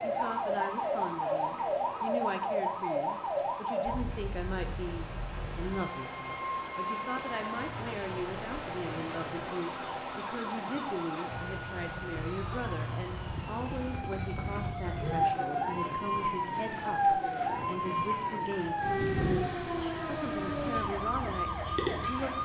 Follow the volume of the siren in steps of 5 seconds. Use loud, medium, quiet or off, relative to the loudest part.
loud, medium, medium, loud, loud.